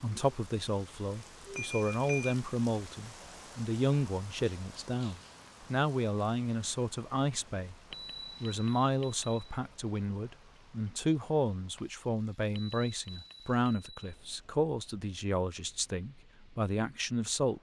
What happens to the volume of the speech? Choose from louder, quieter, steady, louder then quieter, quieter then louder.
steady.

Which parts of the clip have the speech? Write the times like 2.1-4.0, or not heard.
0.0-7.8, 8.4-17.5.